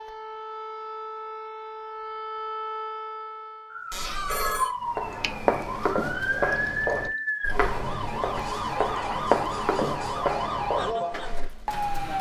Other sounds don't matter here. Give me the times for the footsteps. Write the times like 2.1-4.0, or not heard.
4.8-11.9.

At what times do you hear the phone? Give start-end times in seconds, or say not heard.
3.9-4.7.